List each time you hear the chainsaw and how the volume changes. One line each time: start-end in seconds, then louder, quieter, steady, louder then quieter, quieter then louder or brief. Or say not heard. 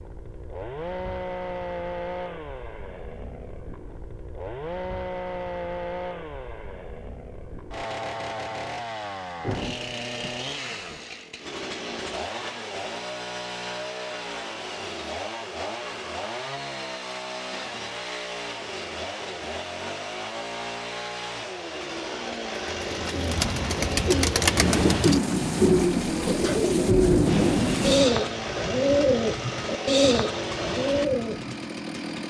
0.0-32.2 steady.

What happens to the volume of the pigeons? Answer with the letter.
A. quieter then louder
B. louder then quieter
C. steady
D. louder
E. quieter
C.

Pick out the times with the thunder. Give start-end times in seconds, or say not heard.
9.4-11.1, 24.6-28.1.